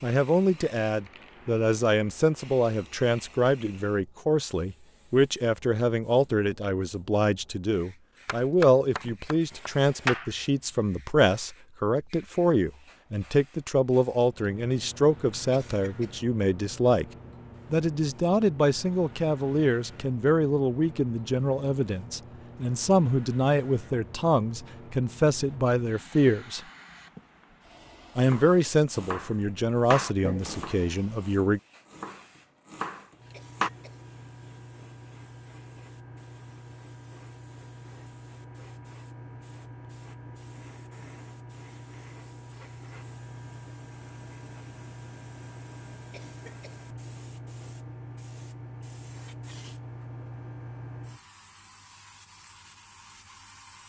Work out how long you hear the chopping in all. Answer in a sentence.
The chopping can be heard for 8 seconds in total.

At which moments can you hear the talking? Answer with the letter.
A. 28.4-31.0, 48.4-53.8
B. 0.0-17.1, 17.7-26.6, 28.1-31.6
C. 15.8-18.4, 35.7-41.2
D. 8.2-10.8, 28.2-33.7
B.